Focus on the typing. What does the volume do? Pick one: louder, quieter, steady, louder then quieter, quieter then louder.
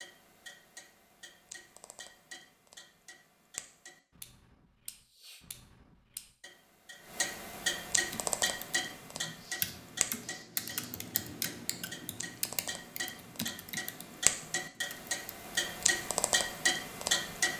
quieter.